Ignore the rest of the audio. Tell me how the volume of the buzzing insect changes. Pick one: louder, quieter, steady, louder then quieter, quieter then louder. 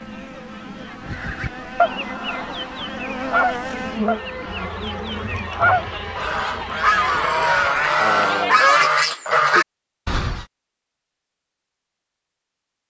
louder then quieter.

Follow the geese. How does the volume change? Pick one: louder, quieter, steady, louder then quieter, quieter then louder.
louder.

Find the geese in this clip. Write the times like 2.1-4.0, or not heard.
1.1-10.4.